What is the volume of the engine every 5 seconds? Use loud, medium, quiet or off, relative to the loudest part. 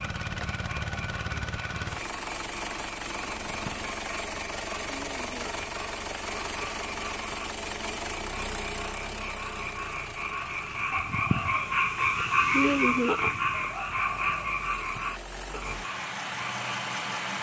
loud, loud, medium, loud.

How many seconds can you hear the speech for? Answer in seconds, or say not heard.
not heard.